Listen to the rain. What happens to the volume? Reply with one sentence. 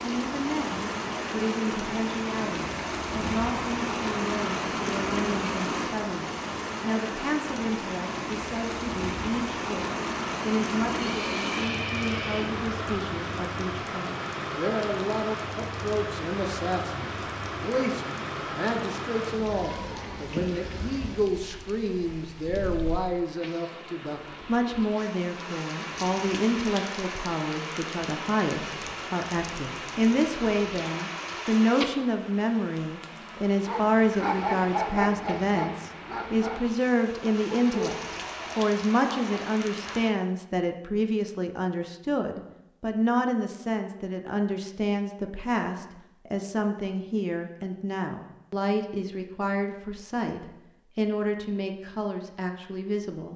The volume of the rain goes down.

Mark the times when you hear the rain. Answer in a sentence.
The rain can be heard from 0.0 to 40.1 s.